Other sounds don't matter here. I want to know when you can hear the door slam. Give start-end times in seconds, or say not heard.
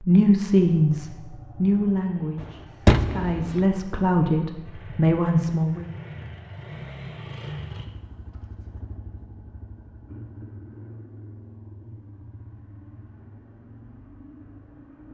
2.4-3.6.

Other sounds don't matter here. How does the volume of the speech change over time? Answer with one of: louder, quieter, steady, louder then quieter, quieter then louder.
quieter then louder.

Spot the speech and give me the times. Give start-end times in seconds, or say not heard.
0.0-5.8.